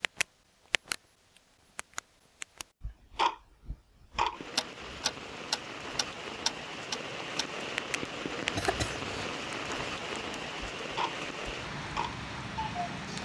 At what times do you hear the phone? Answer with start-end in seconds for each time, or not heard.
not heard.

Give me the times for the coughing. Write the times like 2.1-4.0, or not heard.
8.6-9.3.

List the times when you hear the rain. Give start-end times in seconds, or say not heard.
4.3-13.2.